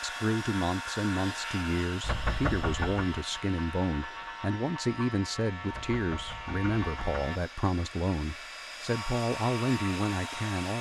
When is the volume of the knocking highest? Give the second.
2 s.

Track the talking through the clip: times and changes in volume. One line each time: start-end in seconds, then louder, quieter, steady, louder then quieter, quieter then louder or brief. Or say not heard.
0.0-10.7 steady.